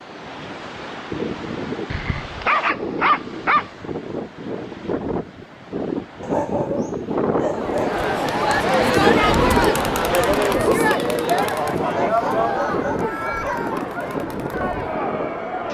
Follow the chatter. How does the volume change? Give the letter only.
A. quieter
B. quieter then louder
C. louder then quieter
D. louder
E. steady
A.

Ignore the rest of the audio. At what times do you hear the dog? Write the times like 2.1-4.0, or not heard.
1.9-3.7, 6.2-8.0, 12.1-13.6.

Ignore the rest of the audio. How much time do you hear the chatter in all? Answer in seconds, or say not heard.
8 s.